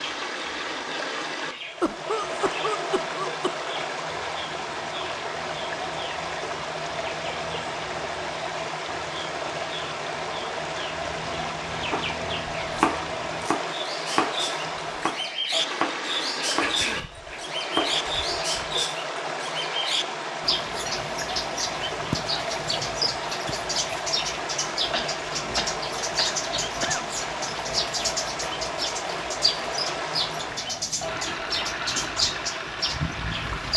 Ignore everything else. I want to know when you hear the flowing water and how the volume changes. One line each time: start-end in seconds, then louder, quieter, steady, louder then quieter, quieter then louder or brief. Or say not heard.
0.0-33.7 steady.